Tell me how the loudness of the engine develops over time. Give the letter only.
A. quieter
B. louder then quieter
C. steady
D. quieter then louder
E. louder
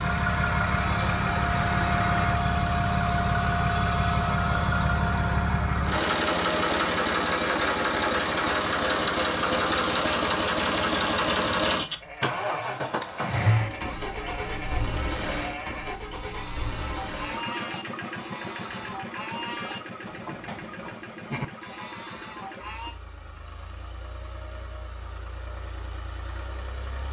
A.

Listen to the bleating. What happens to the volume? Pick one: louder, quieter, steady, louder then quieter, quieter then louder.
steady.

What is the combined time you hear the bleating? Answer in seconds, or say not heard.
11 s.